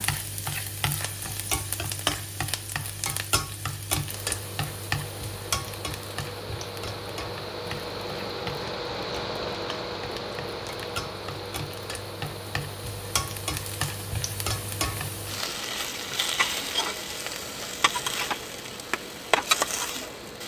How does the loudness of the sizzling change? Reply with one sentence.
The loudness of the sizzling goes down, then up.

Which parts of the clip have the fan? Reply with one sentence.
The fan can be heard from 4.1 to 20.4 s.